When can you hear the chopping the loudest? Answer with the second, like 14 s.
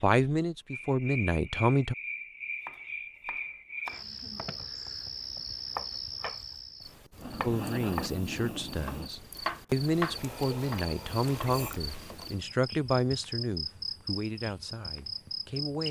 10 s.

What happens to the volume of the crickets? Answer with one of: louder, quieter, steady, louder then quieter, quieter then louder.
steady.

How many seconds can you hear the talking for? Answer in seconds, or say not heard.
10 s.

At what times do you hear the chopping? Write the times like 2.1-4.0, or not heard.
2.6-12.2.